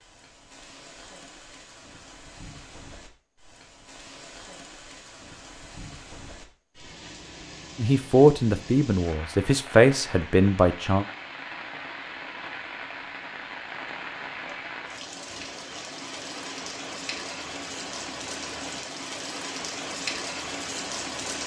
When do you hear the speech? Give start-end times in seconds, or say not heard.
7.8-11.1.